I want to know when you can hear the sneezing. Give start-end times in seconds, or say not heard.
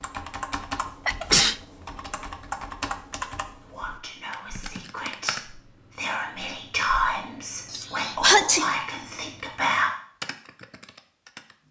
1.1-1.6, 7.7-8.7.